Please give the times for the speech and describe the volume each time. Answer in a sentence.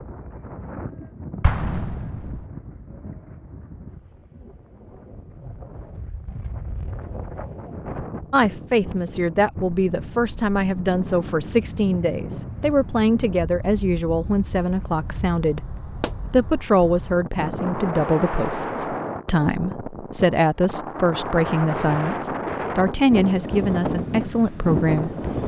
The speech can be heard from 8.3 to 25.1 s, at a steady volume.